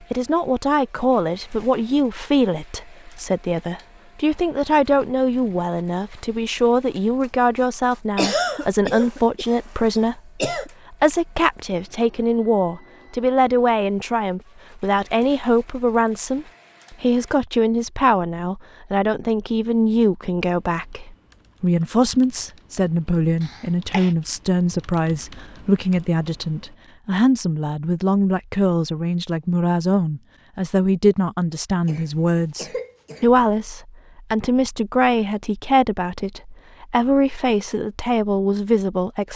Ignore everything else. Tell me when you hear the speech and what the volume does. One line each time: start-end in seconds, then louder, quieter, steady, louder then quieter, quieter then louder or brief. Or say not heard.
0.1-39.3 steady.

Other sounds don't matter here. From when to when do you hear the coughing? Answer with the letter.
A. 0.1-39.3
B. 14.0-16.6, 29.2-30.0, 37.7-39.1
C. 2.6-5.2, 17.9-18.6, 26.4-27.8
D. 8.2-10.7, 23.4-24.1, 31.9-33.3
D.